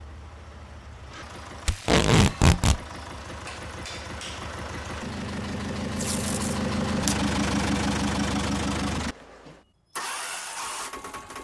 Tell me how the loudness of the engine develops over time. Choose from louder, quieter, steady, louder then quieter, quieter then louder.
louder then quieter.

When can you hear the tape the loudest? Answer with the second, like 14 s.
2 s.